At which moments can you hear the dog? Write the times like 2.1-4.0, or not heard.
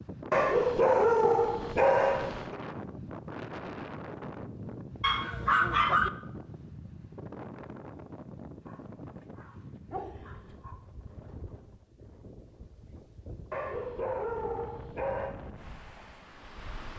0.3-2.5, 5.0-6.1, 8.7-10.8, 13.5-15.3.